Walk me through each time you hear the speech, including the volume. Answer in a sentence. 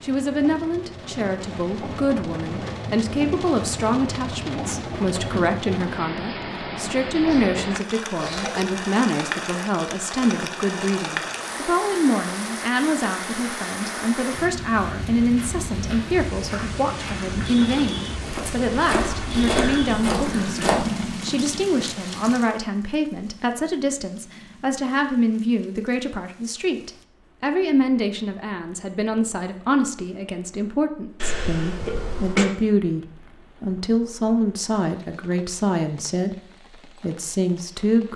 The speech can be heard from 0.0 to 38.1 s, at a steady volume.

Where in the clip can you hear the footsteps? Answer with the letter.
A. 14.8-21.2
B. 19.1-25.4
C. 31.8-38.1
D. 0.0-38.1
A.